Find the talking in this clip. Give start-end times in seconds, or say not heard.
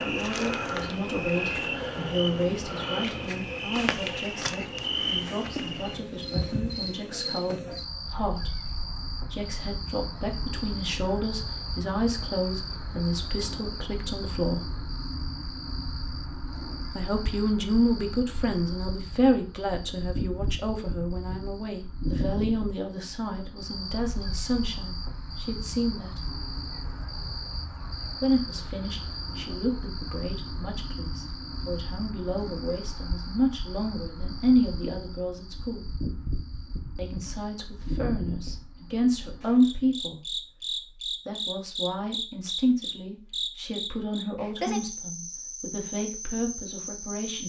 0.0-14.7, 16.9-26.2, 28.1-35.9, 37.0-40.4, 41.0-47.4.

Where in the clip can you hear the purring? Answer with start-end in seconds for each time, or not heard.
not heard.